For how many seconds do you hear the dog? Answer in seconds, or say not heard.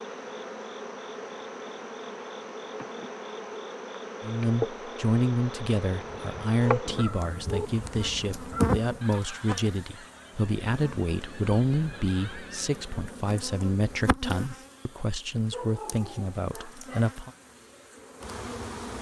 3 s.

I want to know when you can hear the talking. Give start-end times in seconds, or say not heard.
4.2-17.3.